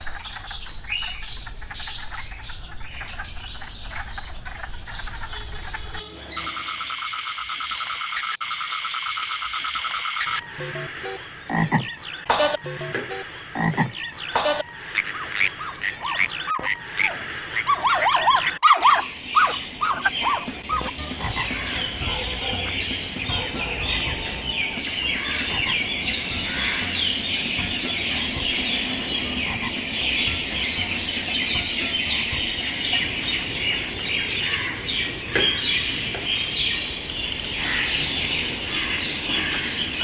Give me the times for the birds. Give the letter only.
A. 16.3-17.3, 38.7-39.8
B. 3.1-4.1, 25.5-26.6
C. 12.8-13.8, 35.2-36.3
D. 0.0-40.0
D.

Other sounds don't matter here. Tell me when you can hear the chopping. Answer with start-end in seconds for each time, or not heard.
12.8-13.8, 35.2-36.3.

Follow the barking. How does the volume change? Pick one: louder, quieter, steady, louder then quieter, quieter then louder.
louder then quieter.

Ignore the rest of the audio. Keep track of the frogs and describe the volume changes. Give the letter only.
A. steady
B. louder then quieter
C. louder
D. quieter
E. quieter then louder
B.